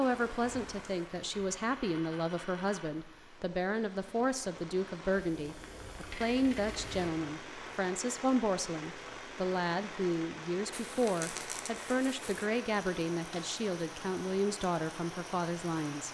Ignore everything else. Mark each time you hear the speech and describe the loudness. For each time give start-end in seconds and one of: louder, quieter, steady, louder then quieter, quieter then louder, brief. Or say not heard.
0.0-16.0 steady.